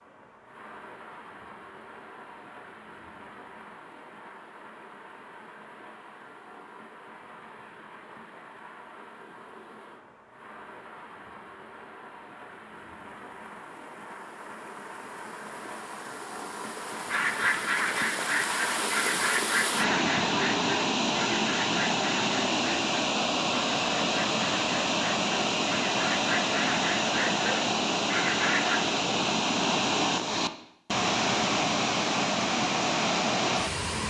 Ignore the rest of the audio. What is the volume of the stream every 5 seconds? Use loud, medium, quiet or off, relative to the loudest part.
quiet, quiet, quiet, medium, loud, loud, loud.